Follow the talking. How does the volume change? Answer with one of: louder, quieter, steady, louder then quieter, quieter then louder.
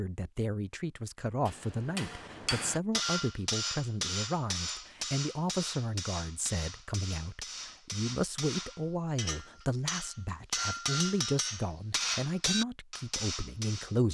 steady.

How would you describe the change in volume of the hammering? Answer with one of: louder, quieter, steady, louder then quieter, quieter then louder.
quieter then louder.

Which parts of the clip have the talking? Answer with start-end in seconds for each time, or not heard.
0.0-14.0.